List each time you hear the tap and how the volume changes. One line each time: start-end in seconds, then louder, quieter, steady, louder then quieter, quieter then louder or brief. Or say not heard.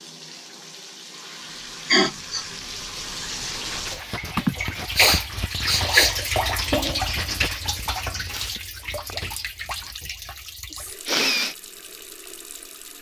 0.0-12.9 louder then quieter.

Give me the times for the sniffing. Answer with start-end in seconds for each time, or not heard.
1.9-2.5, 4.3-6.2, 10.6-11.6.